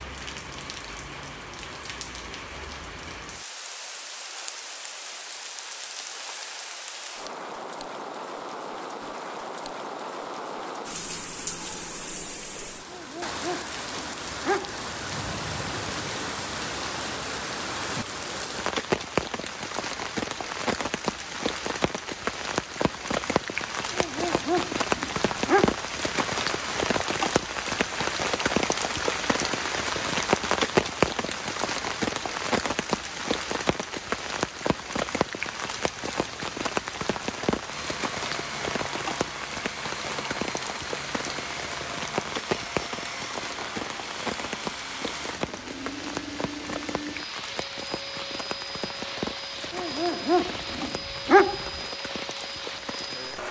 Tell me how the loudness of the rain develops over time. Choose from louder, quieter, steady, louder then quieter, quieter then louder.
louder then quieter.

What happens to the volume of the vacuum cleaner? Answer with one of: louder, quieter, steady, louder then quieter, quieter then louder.
steady.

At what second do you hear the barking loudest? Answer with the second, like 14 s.
51 s.